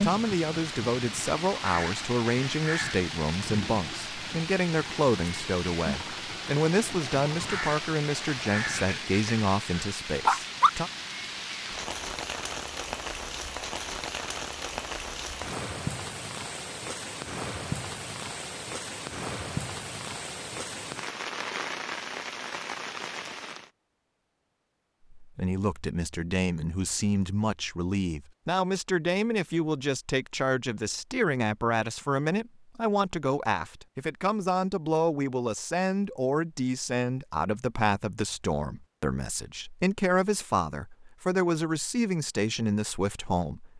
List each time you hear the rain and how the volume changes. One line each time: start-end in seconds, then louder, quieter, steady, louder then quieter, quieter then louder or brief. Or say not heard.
0.0-23.7 steady.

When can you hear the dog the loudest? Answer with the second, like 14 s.
10 s.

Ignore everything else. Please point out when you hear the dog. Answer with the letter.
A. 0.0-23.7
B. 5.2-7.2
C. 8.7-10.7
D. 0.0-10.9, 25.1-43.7
C.